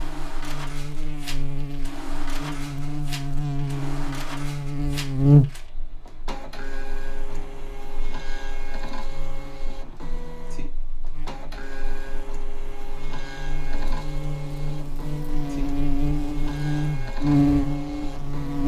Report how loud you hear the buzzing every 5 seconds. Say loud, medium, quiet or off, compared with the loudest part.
medium, loud, quiet, loud.